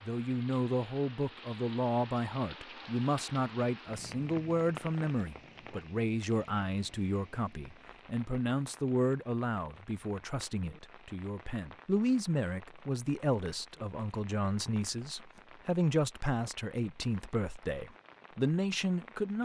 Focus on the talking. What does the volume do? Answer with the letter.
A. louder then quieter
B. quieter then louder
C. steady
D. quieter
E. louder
C.